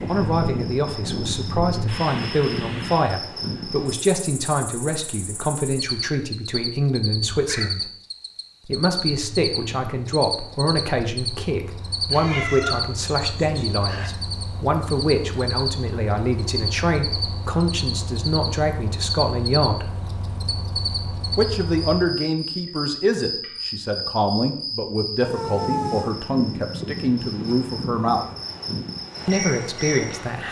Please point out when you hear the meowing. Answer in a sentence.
You can hear the meowing from 7.3 to 7.7 s, from 12.1 to 14.1 s and from 25.2 to 26.1 s.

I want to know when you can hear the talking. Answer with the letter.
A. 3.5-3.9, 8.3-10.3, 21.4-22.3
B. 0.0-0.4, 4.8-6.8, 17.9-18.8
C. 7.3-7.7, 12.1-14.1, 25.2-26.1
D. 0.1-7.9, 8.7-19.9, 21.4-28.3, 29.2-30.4
D.